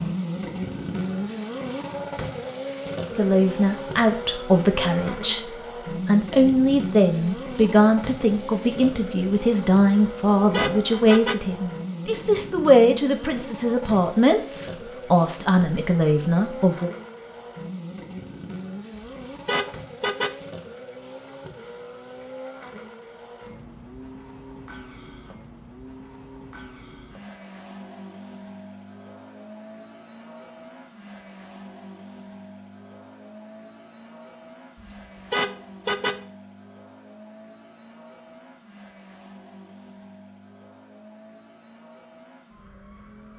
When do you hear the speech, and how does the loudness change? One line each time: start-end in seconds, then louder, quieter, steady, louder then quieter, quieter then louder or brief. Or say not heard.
3.1-16.9 steady.